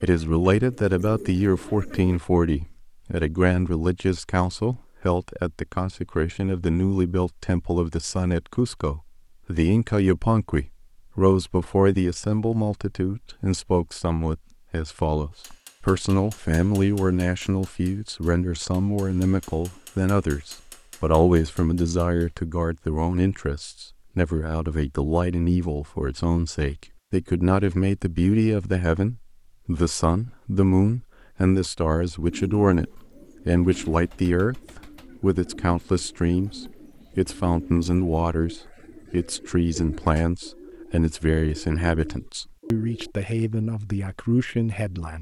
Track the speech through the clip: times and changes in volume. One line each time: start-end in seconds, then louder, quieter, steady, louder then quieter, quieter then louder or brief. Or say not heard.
0.0-45.1 steady.